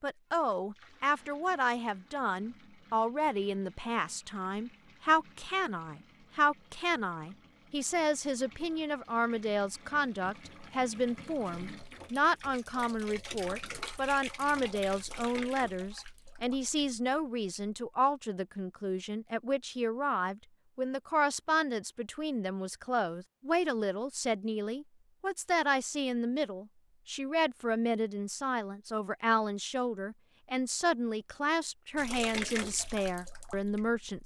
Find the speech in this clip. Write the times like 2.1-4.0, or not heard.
0.0-34.2.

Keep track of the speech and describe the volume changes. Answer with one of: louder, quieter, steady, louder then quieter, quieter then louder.
steady.